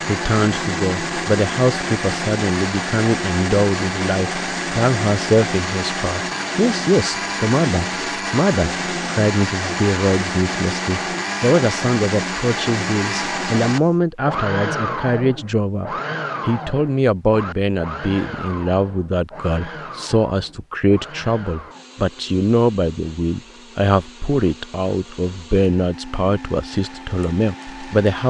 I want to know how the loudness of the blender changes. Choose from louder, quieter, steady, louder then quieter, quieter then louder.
quieter.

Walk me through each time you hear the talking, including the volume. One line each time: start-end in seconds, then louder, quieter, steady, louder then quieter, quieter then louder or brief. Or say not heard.
0.1-28.2 steady.